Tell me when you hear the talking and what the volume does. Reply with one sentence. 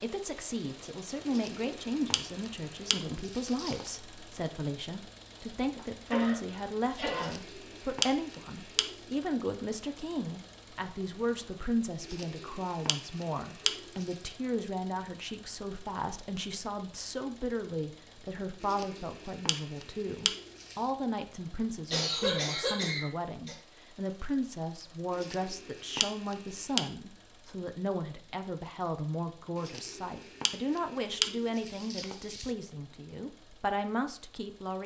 The talking can be heard from 0.0 to 34.8 s, at a steady volume.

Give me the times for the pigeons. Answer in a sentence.
The pigeons can be heard from 1.2 to 3.9 s, from 7.1 to 8.9 s, from 12.0 to 14.2 s, from 18.6 to 20.8 s, from 25.1 to 26.8 s and from 29.6 to 32.5 s.